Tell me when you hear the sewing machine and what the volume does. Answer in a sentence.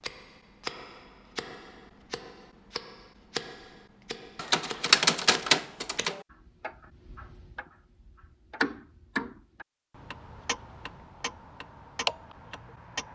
The sewing machine can't be heard in this clip.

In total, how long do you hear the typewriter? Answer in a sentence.
The typewriter can be heard for 2 seconds in total.